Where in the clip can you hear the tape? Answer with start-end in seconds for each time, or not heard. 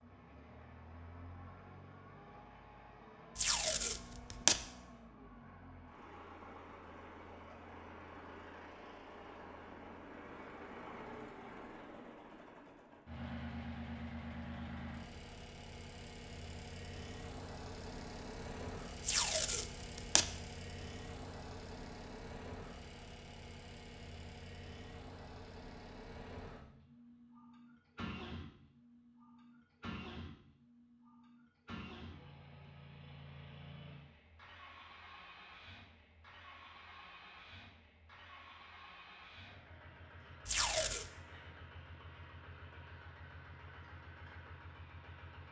3.4-4.6, 19.0-20.2, 40.5-41.1.